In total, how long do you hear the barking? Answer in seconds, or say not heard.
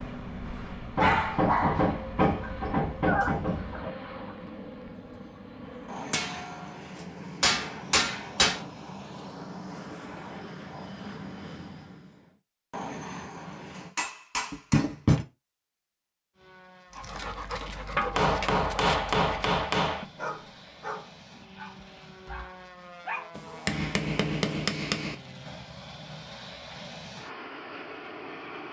11 s.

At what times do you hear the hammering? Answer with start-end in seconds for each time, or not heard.
0.9-3.9, 6.1-8.6, 13.8-15.2, 18.1-20.1, 23.4-25.1.